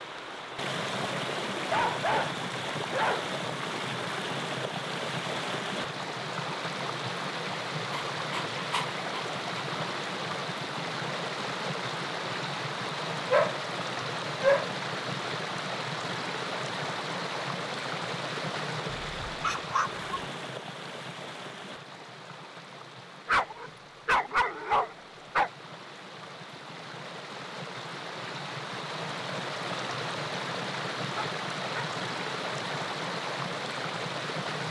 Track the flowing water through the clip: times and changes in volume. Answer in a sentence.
You can hear the flowing water from 0.0 to 34.6 s, getting quieter then louder.